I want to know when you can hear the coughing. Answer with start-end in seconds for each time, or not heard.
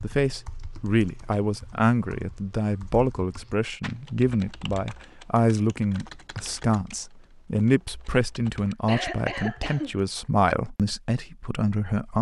8.7-9.9.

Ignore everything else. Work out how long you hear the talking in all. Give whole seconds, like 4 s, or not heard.
12 s.